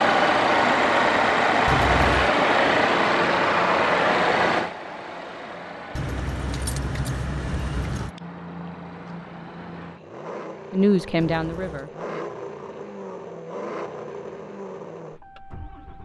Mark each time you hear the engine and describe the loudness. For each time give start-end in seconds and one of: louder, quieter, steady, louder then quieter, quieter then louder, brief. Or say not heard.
0.0-15.9 quieter.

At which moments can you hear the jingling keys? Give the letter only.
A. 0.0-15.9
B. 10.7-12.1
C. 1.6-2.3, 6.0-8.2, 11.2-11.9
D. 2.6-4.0
C.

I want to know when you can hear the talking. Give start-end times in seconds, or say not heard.
10.7-12.1.